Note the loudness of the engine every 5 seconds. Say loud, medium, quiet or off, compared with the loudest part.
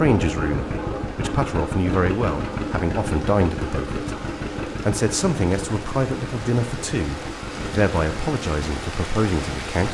loud, medium.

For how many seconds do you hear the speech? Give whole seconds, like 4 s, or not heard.
9 s.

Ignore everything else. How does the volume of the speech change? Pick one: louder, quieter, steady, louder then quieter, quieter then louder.
steady.